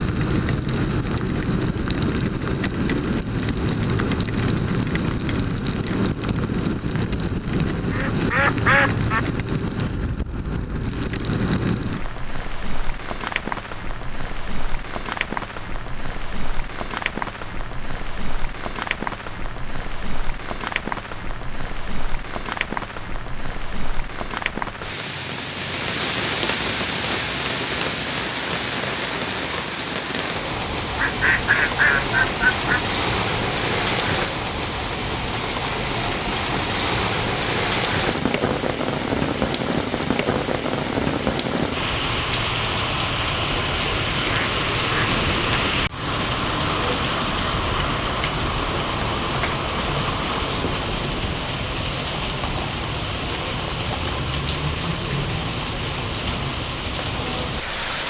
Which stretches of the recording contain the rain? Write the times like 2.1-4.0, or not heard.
0.0-58.0.